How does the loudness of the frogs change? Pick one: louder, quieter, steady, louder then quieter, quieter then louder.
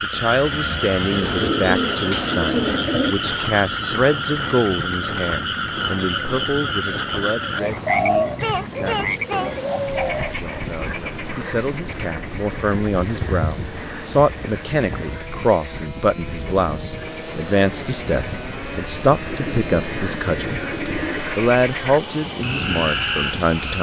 quieter then louder.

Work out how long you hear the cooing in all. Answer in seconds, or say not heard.
8 s.